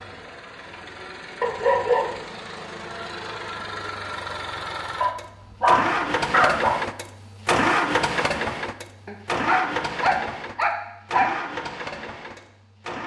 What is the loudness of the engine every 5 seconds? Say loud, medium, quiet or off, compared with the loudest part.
medium, loud, medium.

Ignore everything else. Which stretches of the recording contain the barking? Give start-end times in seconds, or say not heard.
1.4-2.3, 5.0-6.8, 9.1-11.3.